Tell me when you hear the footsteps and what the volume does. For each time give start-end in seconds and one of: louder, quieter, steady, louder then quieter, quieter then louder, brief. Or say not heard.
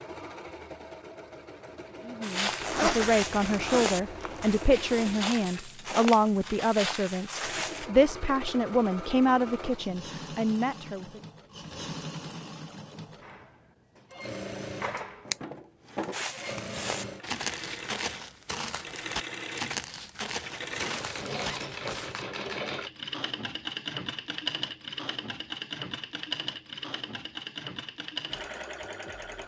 2.2-7.9 steady
16.1-21.6 steady.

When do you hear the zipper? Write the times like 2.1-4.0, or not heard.
2.6-4.6, 20.7-22.2.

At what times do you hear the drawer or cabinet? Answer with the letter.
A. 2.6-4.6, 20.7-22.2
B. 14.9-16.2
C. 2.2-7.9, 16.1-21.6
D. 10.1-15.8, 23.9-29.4
B.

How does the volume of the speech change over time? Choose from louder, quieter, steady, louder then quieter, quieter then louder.
steady.